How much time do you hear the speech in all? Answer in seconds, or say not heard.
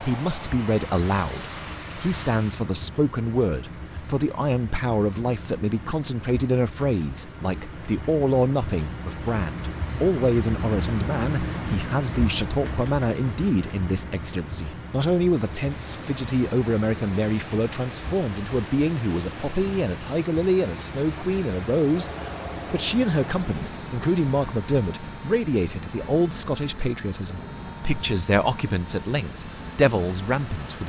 31 s.